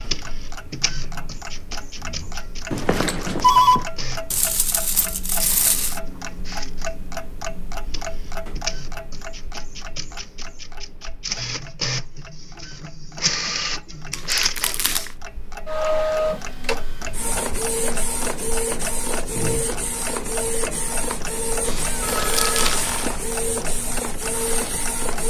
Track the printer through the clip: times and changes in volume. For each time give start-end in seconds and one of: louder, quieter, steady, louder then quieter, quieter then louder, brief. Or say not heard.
0.0-25.2 louder.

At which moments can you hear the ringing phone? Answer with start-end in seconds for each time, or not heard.
2.7-3.9, 21.6-22.8.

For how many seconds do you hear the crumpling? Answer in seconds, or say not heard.
4 s.